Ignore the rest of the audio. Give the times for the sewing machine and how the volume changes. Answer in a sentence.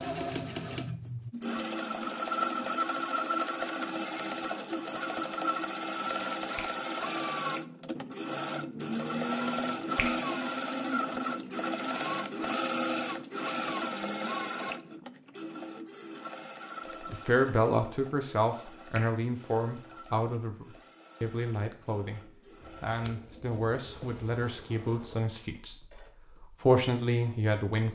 You can hear the sewing machine from 0.0 to 27.9 s, getting quieter.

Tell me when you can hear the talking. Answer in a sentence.
The talking can be heard from 17.1 to 27.9 s.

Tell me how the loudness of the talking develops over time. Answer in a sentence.
The loudness of the talking goes down, then up.